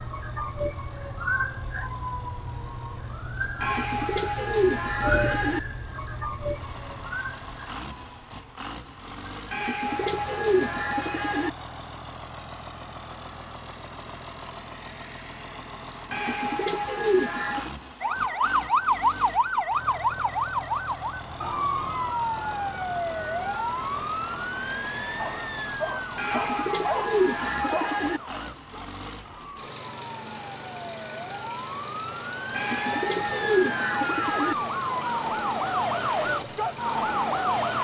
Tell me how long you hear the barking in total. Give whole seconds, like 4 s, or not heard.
3 s.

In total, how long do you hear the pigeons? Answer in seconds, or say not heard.
10 s.